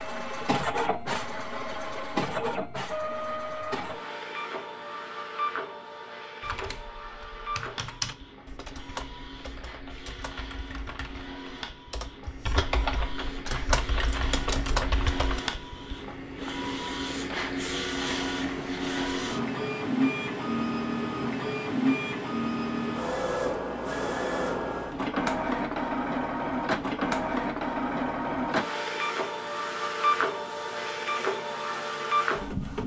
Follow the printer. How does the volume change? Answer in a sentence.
The loudness of the printer goes down, then up.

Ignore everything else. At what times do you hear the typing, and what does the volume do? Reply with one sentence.
The typing can be heard from 6.4 to 15.4 s, getting quieter then louder.